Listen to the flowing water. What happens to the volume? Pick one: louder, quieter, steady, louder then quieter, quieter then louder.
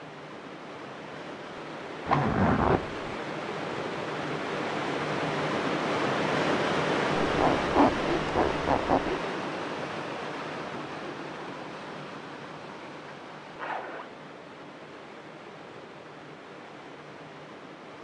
louder then quieter.